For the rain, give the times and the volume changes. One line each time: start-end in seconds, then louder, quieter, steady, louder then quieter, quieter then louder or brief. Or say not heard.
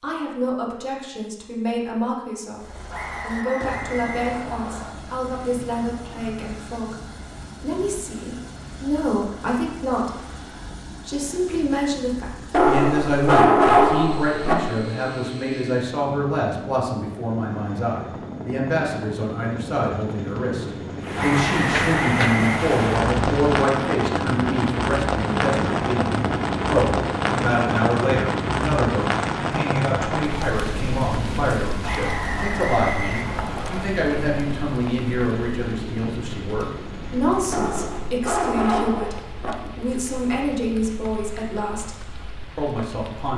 21.0-43.3 quieter.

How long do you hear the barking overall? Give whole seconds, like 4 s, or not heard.
4 s.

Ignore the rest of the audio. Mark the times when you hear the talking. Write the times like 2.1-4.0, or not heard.
0.0-10.2, 10.9-43.3.